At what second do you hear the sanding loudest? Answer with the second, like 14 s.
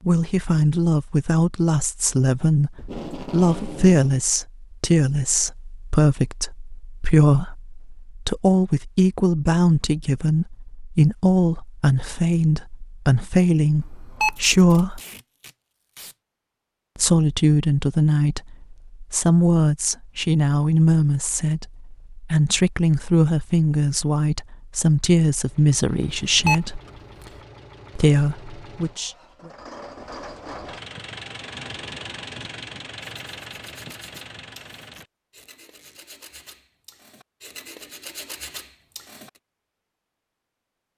38 s.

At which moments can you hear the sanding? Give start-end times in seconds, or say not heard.
33.0-39.4.